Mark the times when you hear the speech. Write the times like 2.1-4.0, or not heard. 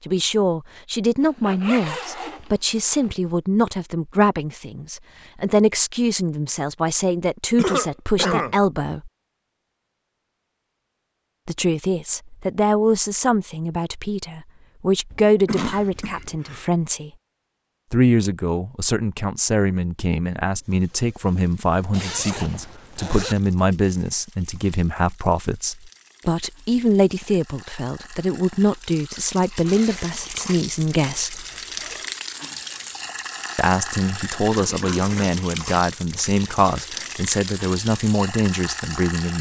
0.1-9.1, 11.4-17.1, 17.9-31.4, 33.5-39.3.